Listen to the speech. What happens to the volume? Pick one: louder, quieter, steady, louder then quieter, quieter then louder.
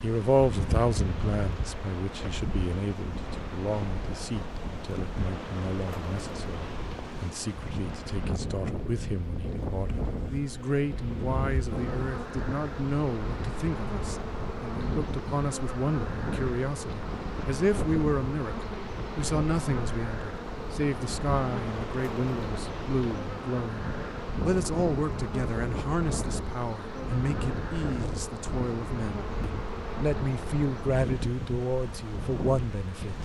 steady.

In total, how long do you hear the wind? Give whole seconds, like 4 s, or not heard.
33 s.